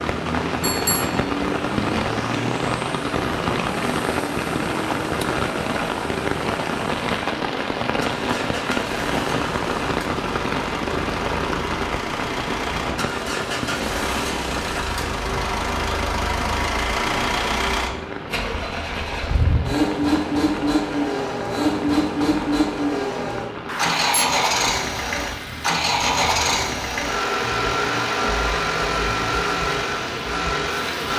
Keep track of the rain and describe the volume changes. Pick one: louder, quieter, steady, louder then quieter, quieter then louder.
quieter.